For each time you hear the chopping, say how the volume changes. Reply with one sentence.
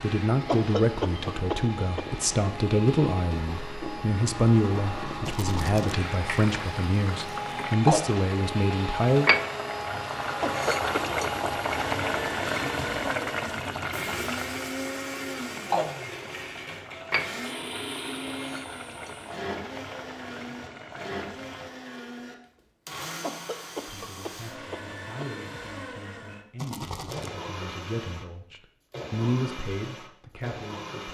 You can't hear the chopping here.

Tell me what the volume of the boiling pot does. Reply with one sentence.
The volume of the boiling pot goes up, then down.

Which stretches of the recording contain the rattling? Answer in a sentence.
The rattling can be heard from 5.2 to 6.0 s and from 26.6 to 27.4 s.